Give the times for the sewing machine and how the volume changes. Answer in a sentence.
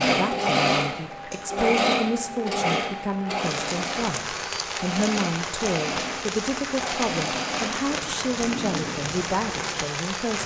You can hear the sewing machine from 0.0 to 10.4 s, getting quieter.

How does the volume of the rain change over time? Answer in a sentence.
The volume of the rain goes up.